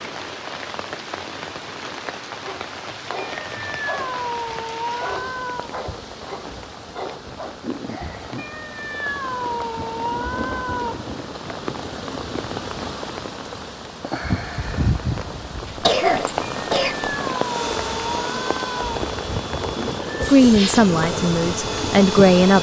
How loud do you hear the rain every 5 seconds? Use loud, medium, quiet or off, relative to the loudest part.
medium, medium, loud, loud, loud.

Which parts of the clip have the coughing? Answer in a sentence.
The coughing can be heard from 15.7 to 17.1 s.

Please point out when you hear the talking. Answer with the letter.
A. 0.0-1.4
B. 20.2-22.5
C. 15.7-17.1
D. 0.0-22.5
B.